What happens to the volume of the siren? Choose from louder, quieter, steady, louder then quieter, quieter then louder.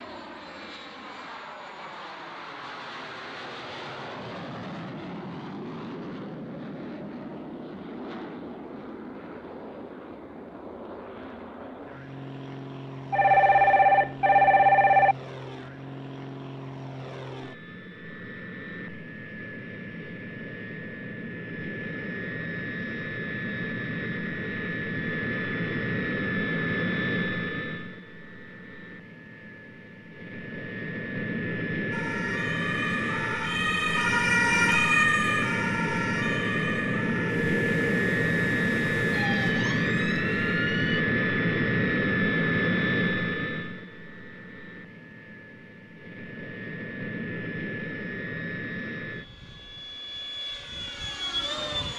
louder then quieter.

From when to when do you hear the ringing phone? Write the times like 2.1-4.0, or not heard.
13.1-15.2.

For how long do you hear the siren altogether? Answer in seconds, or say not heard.
9 s.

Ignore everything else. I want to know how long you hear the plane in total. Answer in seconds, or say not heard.
52 s.